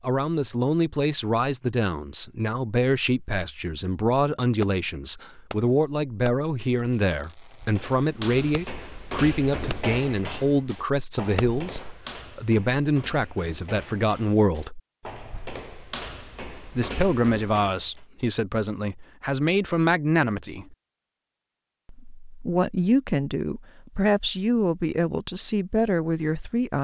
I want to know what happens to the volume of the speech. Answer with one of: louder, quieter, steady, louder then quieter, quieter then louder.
steady.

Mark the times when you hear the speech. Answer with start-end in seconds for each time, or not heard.
0.0-14.8, 16.8-20.8, 21.9-26.7.